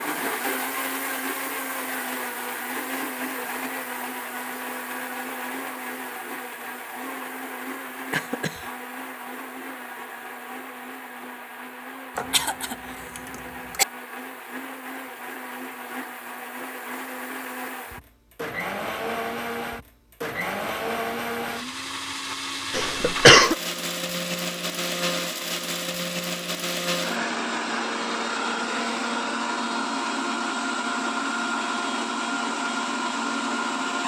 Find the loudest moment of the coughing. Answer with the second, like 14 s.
23 s.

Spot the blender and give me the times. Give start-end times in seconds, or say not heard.
0.0-34.0.